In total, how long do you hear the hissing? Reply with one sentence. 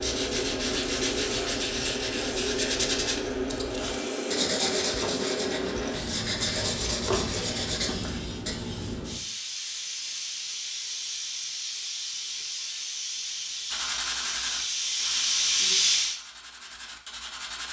The hissing can be heard for 16 seconds in total.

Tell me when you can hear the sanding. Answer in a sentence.
The sanding can be heard from 0.0 to 8.6 s and from 13.7 to 17.6 s.